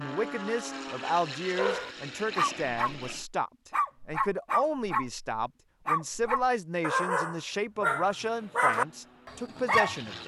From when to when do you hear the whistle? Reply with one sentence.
The whistle can't be heard in this clip.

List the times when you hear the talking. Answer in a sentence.
You can hear the talking from 0.0 to 10.2 s.